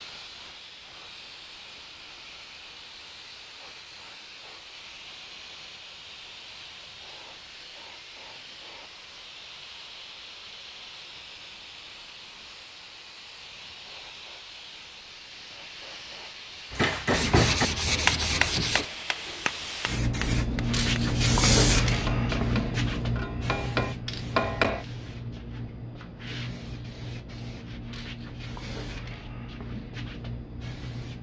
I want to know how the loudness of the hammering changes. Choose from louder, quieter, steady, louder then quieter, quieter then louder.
quieter then louder.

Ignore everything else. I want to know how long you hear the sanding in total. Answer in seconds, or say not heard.
2 s.